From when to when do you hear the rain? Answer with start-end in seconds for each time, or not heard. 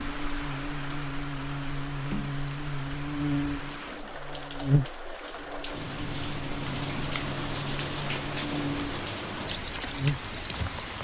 0.0-11.0.